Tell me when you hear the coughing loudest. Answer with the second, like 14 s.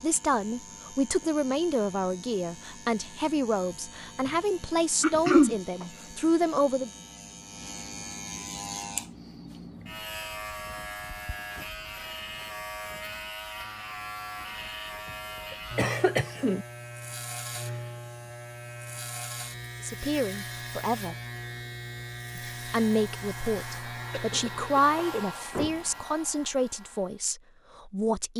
5 s.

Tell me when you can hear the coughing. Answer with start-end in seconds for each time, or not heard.
5.0-5.5, 15.8-16.6, 24.1-24.9.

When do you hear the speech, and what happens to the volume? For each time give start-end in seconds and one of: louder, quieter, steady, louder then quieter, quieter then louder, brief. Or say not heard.
0.0-6.9 steady
19.8-21.1 brief
22.4-28.3 quieter.